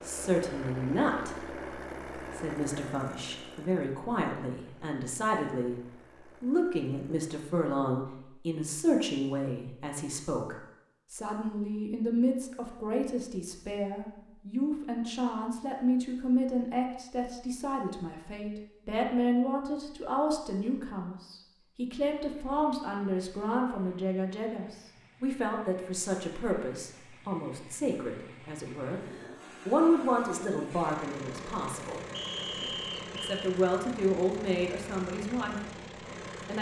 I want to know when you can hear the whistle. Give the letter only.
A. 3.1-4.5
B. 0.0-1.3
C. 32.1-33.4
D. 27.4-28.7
C.